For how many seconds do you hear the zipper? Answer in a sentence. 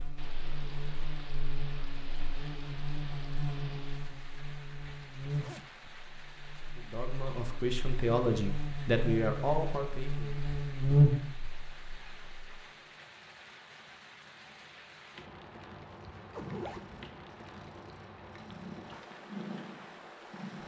The zipper can be heard for 2 seconds in total.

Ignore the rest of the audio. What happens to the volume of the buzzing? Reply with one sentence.
The volume of the buzzing goes up.